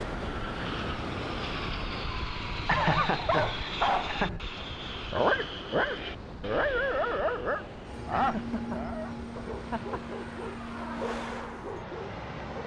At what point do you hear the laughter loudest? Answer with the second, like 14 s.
3 s.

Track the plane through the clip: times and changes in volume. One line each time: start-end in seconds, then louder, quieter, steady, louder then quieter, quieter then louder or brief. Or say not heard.
0.0-12.6 steady.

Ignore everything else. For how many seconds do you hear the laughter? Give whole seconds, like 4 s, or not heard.
4 s.